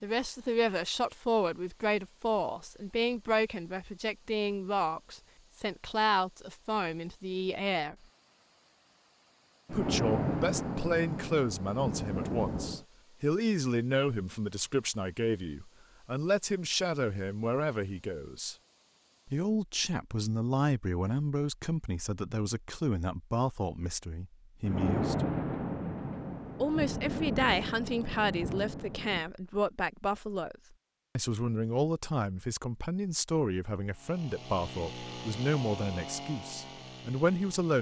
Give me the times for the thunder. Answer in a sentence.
You can hear the thunder from 9.7 to 12.8 s and from 24.6 to 29.2 s.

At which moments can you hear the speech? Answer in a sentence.
The speech can be heard from 0.0 to 8.0 s, from 9.7 to 18.6 s, from 19.2 to 25.2 s, from 26.6 to 30.6 s and from 31.1 to 37.7 s.